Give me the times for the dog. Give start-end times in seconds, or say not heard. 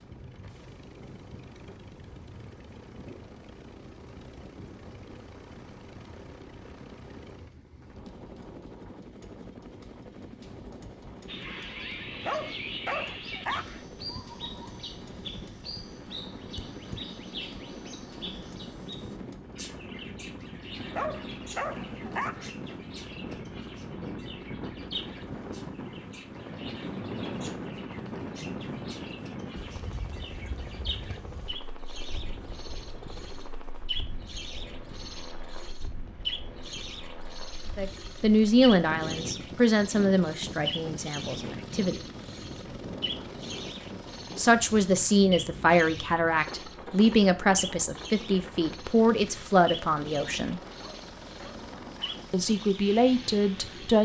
12.2-13.8, 20.9-22.6, 50.8-52.2.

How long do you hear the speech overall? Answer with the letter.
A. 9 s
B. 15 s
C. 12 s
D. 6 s
C.